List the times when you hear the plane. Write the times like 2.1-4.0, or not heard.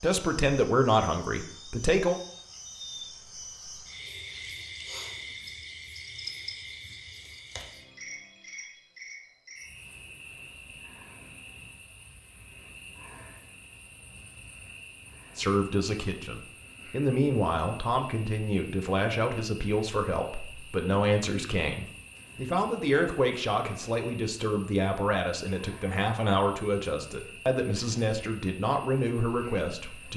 not heard.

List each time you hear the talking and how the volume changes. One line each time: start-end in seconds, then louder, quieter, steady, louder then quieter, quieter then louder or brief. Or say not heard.
0.0-2.2 brief
15.3-30.1 steady.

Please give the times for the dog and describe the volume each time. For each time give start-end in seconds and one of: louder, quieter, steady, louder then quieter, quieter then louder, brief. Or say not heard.
not heard.